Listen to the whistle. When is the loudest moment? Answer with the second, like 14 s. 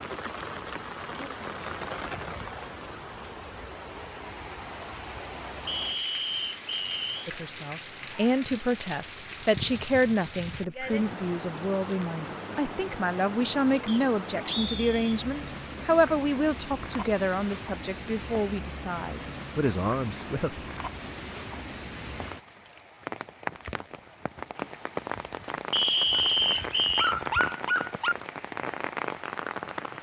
26 s.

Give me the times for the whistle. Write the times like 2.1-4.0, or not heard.
5.7-7.3, 13.8-15.2, 25.7-27.1.